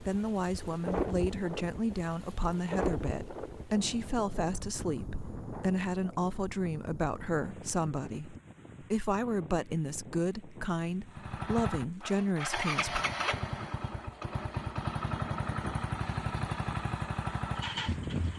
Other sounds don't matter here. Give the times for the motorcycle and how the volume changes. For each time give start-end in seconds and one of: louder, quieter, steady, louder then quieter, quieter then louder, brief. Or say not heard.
11.1-18.3 steady.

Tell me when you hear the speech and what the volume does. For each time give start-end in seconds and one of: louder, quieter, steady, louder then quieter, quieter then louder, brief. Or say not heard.
0.0-13.0 steady.